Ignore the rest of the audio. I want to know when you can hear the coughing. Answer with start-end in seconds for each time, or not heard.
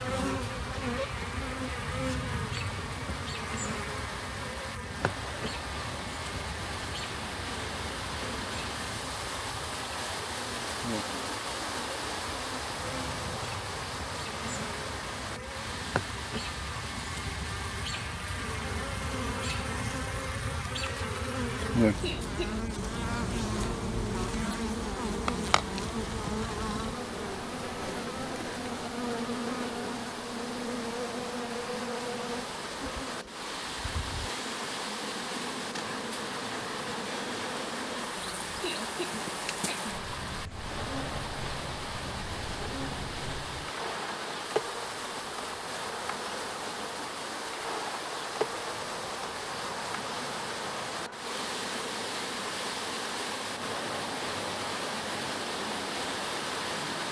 22.0-22.6, 38.6-40.0.